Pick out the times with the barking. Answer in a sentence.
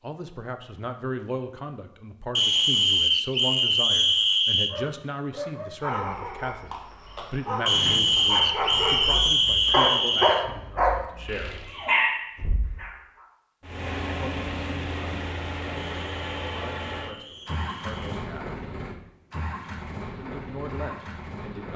You can hear the barking from 4.7 to 13.2 s.